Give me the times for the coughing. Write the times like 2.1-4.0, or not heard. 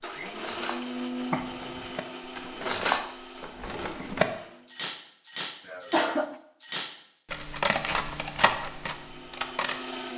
1.3-1.9, 5.7-6.3.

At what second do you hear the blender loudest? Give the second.
1 s.